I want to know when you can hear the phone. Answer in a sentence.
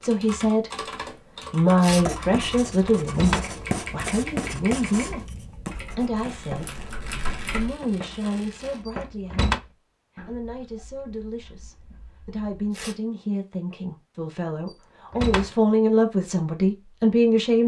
The phone can't be heard in this clip.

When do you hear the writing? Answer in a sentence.
You can hear the writing from 1.9 to 12.4 s.